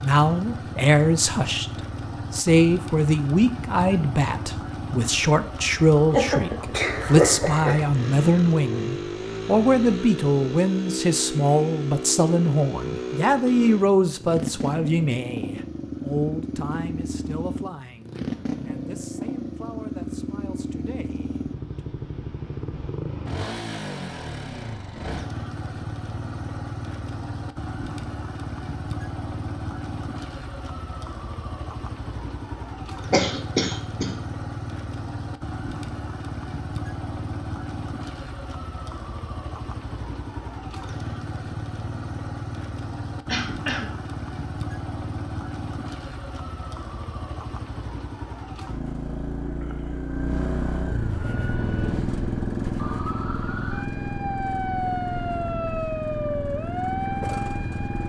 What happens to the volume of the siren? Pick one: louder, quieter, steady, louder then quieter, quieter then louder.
louder.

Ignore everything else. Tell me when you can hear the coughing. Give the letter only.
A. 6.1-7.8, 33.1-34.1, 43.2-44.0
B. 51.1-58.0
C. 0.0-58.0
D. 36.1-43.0
A.